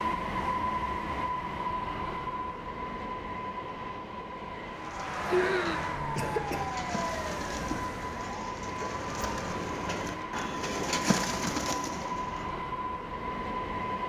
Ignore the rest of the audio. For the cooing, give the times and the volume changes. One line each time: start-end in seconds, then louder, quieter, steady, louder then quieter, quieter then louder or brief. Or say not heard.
4.8-12.6 louder.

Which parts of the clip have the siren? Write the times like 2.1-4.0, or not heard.
4.8-9.9.